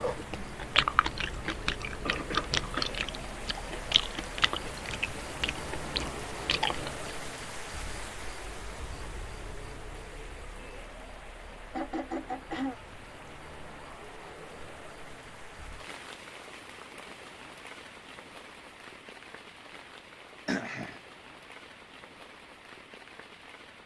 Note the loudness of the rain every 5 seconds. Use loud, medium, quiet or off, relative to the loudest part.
loud, loud, medium, medium, medium.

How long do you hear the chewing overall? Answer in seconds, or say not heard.
7 s.